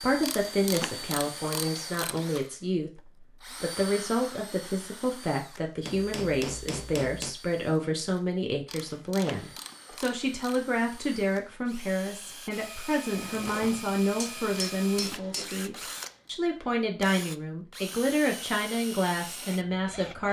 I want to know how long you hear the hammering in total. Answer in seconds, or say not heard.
4 s.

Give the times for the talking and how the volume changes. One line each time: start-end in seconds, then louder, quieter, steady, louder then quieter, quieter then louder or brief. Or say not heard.
0.0-20.2 steady.